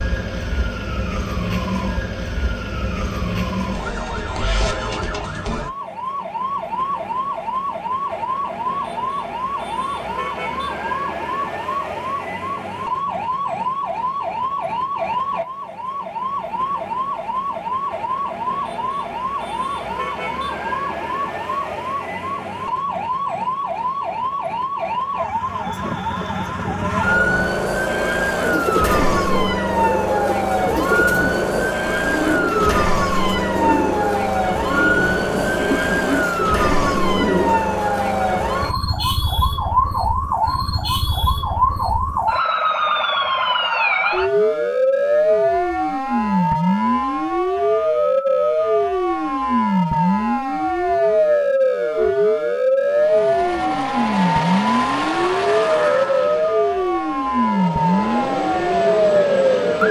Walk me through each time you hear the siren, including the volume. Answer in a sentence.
The siren can be heard from 0.0 to 59.8 s, getting louder.